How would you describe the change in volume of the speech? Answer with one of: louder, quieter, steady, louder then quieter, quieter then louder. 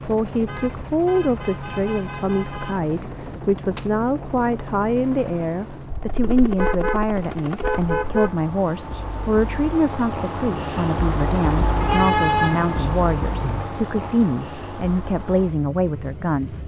steady.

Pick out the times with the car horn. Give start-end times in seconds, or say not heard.
0.5-2.8, 5.9-8.5, 11.8-13.7.